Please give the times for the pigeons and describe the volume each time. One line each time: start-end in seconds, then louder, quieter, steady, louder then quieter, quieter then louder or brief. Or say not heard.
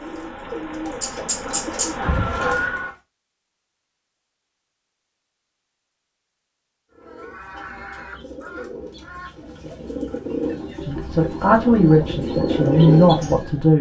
0.0-2.9 brief
6.9-13.7 louder.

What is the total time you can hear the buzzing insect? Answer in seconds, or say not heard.
3 s.